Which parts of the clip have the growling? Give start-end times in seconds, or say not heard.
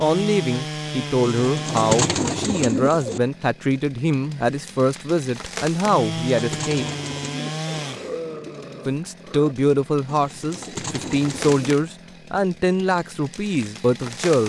7.7-9.6.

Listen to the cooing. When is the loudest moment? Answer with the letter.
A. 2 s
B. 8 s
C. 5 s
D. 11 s
A.